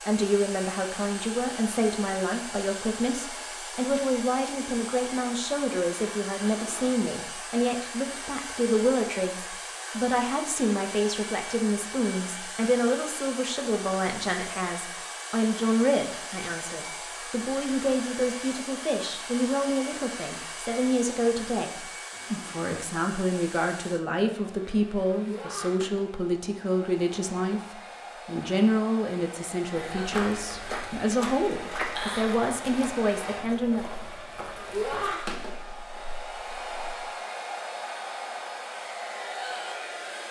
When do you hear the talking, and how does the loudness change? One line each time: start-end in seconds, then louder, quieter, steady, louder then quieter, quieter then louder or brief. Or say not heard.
0.1-33.9 steady.